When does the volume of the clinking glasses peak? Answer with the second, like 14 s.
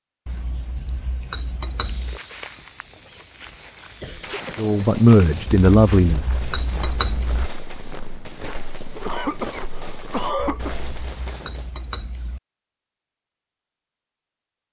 7 s.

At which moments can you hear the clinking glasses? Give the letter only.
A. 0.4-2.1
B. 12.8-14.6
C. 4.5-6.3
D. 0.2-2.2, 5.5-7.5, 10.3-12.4
D.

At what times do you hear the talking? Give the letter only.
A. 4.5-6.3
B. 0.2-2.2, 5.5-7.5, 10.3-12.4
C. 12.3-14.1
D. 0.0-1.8
A.